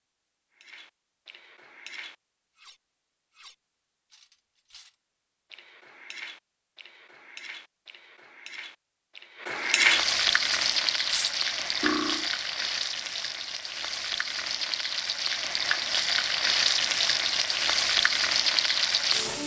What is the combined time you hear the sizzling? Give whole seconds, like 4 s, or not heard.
10 s.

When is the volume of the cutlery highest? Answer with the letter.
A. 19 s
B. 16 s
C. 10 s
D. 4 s
C.